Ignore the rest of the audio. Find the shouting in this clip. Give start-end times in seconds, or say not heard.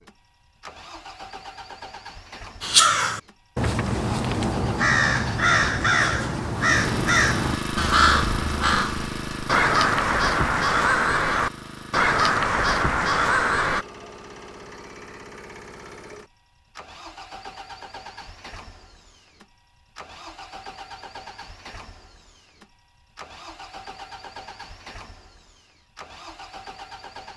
not heard.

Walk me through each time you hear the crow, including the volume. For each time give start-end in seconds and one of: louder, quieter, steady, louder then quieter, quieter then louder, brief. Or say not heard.
2.6-13.8 steady.